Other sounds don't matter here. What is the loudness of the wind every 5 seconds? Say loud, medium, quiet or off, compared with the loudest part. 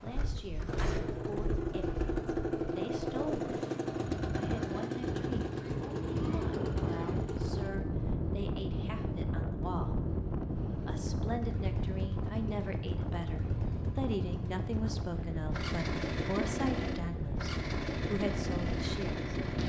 medium, loud, loud, loud.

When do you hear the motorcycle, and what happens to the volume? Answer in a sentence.
The motorcycle can be heard from 0.0 to 19.6 s, getting quieter then louder.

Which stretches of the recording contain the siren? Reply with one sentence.
The siren can't be heard in this clip.